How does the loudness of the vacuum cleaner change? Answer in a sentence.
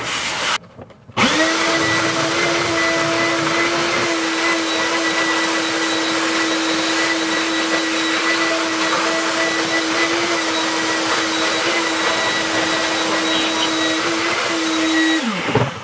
The loudness of the vacuum cleaner stays about the same.